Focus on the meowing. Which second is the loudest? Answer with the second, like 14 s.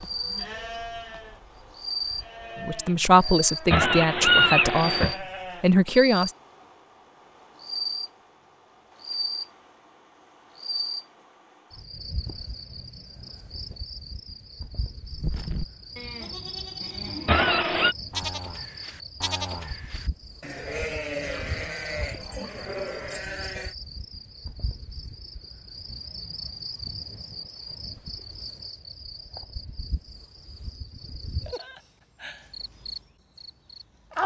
4 s.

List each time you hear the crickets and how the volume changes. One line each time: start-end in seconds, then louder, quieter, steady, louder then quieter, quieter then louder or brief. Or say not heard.
0.0-34.2 quieter.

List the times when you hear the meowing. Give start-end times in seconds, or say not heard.
3.7-5.2, 17.2-17.9.